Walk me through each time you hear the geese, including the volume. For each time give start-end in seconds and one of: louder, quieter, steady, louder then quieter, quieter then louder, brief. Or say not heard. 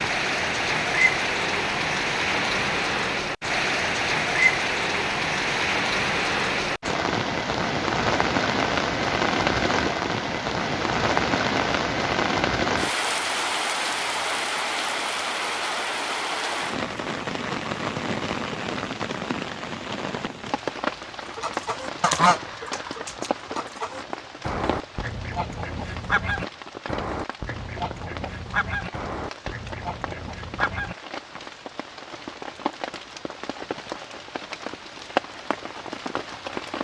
21.4-30.9 quieter.